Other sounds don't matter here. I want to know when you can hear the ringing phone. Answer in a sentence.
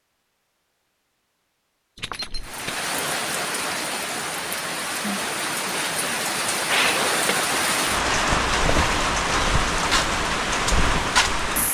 You can't hear the ringing phone here.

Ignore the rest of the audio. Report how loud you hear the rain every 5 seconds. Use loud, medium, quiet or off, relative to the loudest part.
medium, loud, loud.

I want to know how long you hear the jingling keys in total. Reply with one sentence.
The jingling keys can be heard for 2 seconds in total.